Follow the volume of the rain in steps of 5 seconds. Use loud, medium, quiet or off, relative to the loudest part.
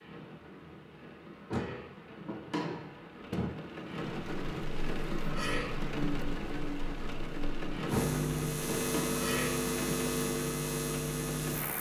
medium, loud, loud.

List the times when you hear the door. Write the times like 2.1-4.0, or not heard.
1.5-3.5, 7.9-9.1.